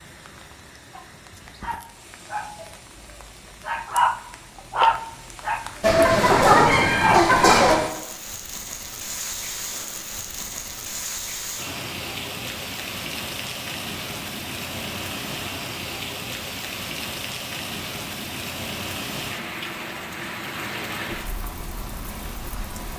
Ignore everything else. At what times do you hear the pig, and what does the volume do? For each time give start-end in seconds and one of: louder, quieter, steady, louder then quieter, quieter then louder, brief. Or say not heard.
not heard.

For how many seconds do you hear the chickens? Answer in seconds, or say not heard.
2 s.